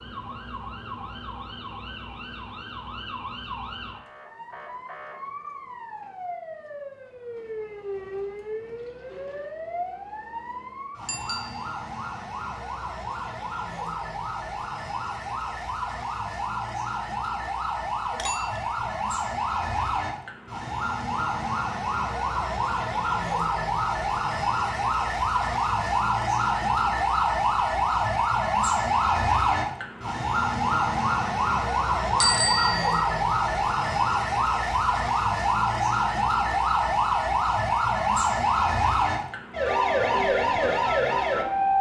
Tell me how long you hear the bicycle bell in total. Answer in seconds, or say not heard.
2 s.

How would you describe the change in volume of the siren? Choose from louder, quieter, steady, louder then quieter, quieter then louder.
louder.